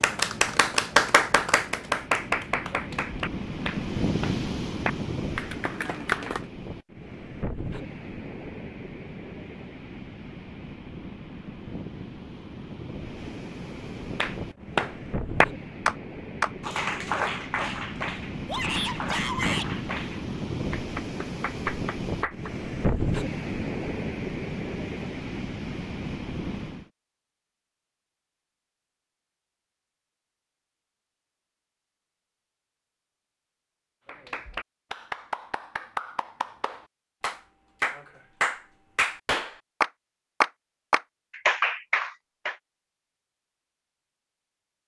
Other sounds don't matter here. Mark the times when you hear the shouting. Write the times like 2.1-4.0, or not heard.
18.4-19.7.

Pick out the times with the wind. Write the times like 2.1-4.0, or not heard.
0.0-26.9.